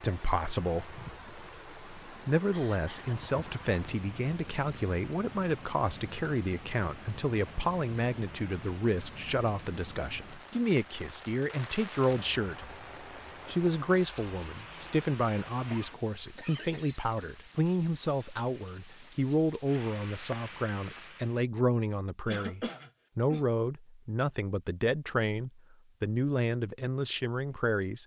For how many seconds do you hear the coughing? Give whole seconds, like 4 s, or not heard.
3 s.